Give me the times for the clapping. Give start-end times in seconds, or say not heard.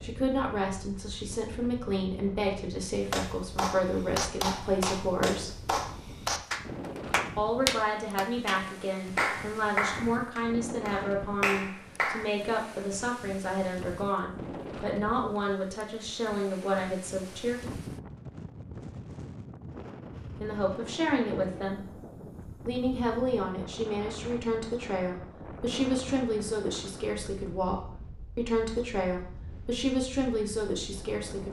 3.1-12.2.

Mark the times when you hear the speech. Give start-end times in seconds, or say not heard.
0.0-5.5, 7.3-17.6, 20.4-21.9, 22.6-31.4.